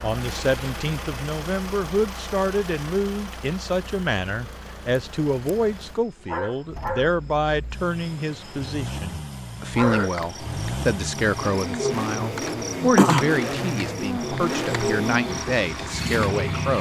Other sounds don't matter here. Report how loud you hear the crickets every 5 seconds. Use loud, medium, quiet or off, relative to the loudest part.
off, medium, loud, medium.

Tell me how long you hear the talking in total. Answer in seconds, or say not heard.
17 s.